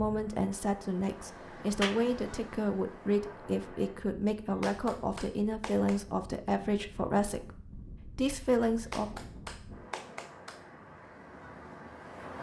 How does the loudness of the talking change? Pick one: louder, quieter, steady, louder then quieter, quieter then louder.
steady.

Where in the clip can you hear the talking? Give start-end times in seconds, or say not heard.
0.0-9.1.